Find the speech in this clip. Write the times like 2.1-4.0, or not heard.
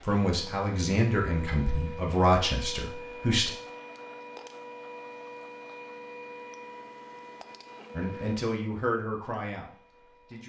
0.0-3.5, 8.0-10.4.